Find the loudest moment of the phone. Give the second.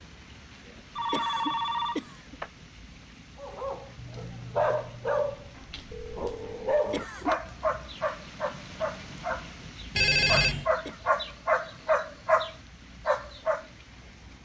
10 s.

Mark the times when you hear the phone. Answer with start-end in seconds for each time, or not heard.
0.9-2.5, 5.9-7.5, 9.9-10.7.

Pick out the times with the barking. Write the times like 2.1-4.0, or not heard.
3.4-13.7.